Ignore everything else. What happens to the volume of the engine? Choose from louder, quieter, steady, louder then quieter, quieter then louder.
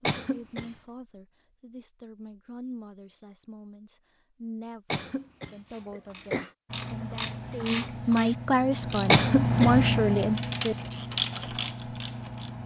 louder then quieter.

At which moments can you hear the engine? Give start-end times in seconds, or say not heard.
6.7-12.6.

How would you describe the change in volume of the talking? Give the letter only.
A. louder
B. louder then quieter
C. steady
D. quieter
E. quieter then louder
A.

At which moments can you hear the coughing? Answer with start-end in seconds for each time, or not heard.
0.1-0.7, 4.9-6.5, 9.1-9.8.